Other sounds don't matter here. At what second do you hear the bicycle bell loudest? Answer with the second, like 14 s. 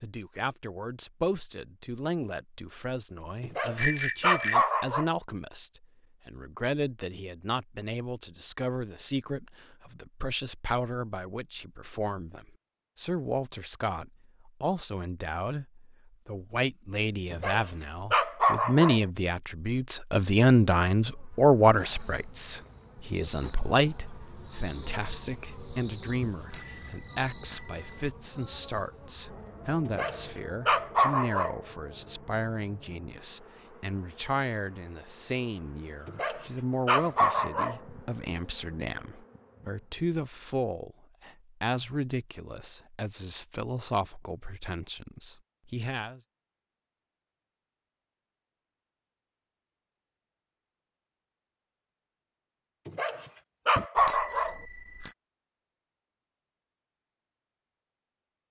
4 s.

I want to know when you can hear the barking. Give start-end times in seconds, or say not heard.
3.4-5.0, 17.3-19.0, 29.9-31.6, 36.0-37.8, 52.9-54.5.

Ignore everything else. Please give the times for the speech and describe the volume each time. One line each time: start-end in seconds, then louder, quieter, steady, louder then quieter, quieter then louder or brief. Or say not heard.
0.0-46.2 louder then quieter.